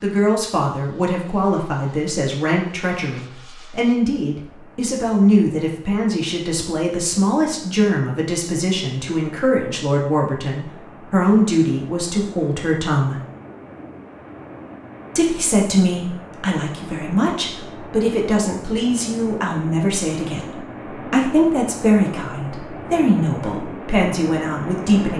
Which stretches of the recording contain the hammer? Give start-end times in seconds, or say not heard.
not heard.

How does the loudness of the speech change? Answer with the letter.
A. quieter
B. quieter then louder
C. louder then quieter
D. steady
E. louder
D.